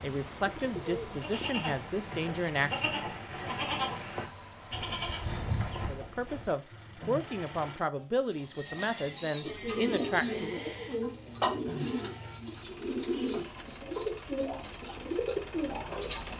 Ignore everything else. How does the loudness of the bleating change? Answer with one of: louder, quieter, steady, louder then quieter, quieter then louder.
quieter.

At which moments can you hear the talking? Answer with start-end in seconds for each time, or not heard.
0.0-3.5, 5.8-10.8.